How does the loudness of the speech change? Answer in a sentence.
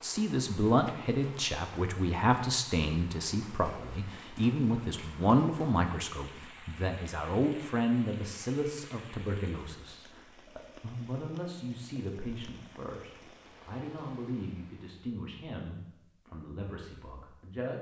The loudness of the speech goes down.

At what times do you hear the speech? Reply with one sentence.
You can hear the speech from 0.0 to 17.7 s.